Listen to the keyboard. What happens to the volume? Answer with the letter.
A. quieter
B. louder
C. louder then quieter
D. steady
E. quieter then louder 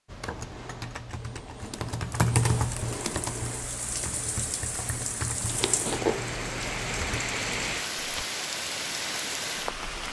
C.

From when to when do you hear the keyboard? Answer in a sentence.
The keyboard can be heard from 0.1 to 8.2 s.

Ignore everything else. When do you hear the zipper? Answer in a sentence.
You can hear the zipper from 5.6 to 6.4 s.